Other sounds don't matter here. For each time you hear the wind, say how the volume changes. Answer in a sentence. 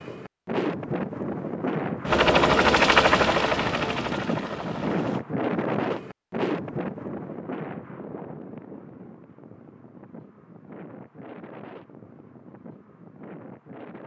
You can hear the wind from 0.0 to 14.0 s, getting quieter.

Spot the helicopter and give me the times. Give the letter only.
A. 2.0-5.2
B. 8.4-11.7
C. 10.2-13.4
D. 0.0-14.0
A.